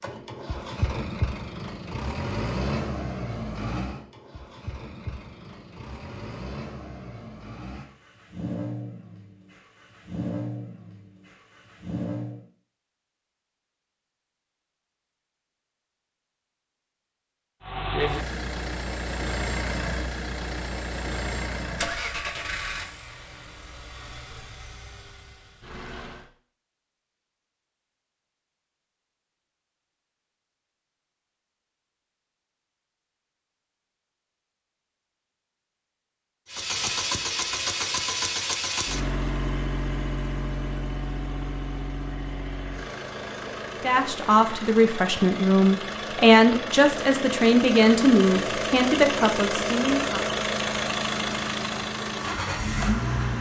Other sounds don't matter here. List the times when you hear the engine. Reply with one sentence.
The engine can be heard from 0.0 to 12.5 s, from 17.6 to 26.2 s and from 36.5 to 53.3 s.